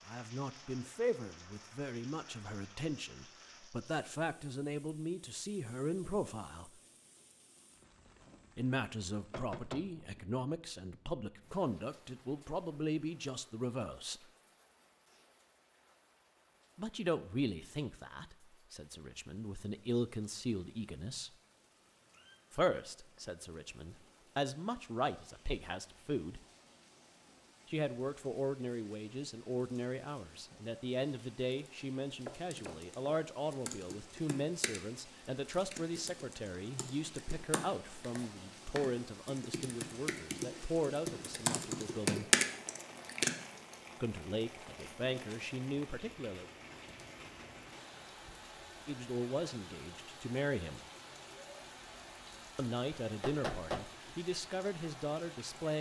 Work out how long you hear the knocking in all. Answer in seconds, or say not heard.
2 s.